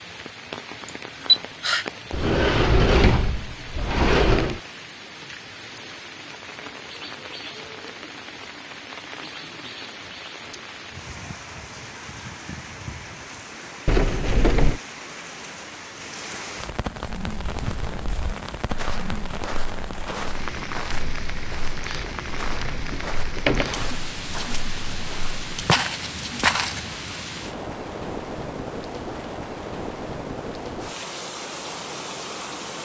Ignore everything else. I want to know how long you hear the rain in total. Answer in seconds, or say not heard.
33 s.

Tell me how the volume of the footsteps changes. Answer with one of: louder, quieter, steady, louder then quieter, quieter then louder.
louder.